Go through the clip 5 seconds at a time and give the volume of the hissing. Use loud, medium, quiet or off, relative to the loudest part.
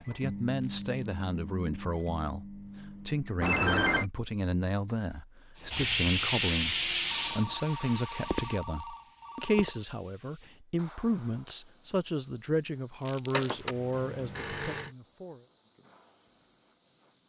off, loud, quiet, quiet.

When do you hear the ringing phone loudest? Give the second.
4 s.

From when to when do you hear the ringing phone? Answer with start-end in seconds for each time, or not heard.
3.4-4.0, 7.1-9.8, 13.3-14.9.